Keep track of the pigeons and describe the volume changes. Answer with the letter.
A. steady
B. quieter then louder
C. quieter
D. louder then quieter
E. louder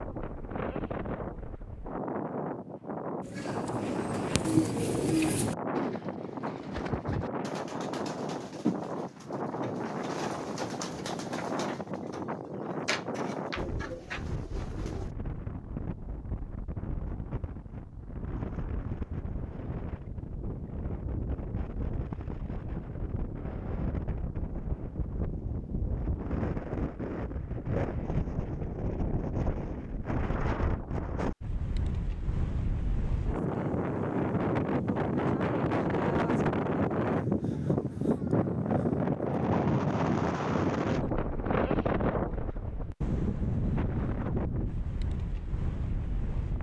C.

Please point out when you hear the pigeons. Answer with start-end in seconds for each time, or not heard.
3.2-15.1.